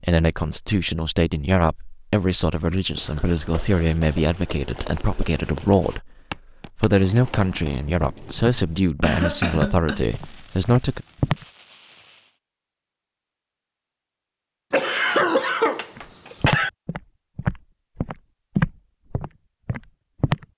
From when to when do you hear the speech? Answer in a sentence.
The speech can be heard from 0.0 to 6.1 s and from 6.8 to 11.1 s.